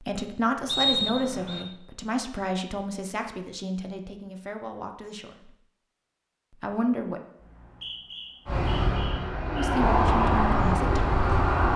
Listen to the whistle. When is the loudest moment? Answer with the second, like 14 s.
1 s.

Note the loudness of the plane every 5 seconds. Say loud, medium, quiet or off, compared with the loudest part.
off, loud, loud.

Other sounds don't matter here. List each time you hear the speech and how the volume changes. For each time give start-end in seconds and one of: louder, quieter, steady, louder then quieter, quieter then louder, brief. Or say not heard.
0.0-5.5 quieter
6.6-7.2 brief
9.5-11.2 brief.